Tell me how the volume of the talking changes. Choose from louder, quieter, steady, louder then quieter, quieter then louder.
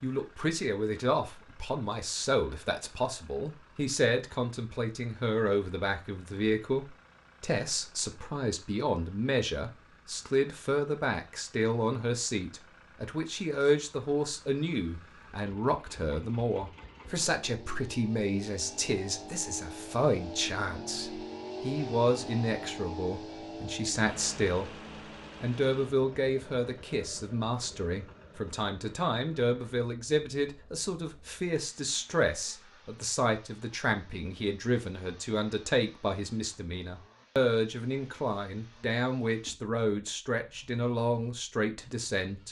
steady.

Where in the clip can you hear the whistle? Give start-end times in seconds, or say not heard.
not heard.